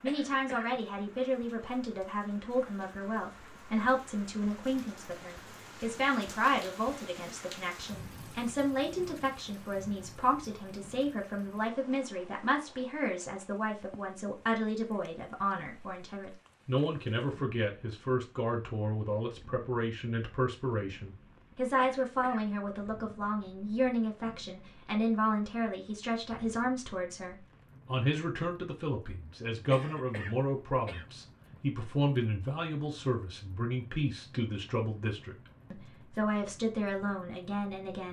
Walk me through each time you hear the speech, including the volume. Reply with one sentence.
The speech can be heard from 0.0 to 38.0 s, at a steady volume.